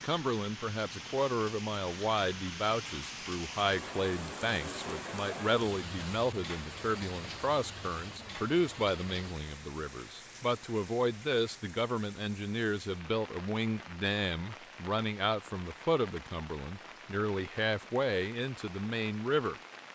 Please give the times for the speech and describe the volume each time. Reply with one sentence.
The speech can be heard from 0.0 to 19.9 s, at a steady volume.